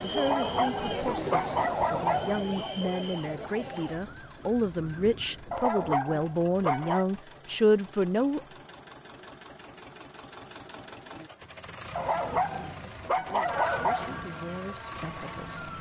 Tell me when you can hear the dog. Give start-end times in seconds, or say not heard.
0.1-2.4, 5.5-7.0, 11.9-14.2.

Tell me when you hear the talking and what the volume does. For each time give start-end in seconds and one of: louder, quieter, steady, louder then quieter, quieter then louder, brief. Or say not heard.
0.0-8.4 louder
12.8-15.6 brief.